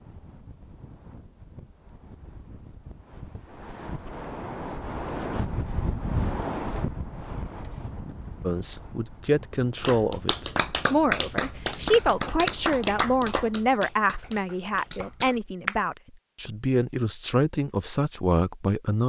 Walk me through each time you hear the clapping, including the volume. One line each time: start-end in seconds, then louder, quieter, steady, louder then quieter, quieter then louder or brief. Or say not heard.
9.8-15.8 quieter.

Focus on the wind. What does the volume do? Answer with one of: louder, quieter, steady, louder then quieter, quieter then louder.
louder then quieter.